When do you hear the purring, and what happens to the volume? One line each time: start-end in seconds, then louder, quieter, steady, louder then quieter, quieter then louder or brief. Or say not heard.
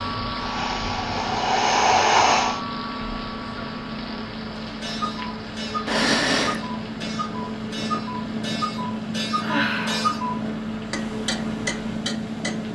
0.0-12.7 louder.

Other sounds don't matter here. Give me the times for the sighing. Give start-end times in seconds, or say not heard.
0.3-2.6, 5.8-6.6, 9.4-10.2.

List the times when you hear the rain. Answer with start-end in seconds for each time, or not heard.
0.0-12.7.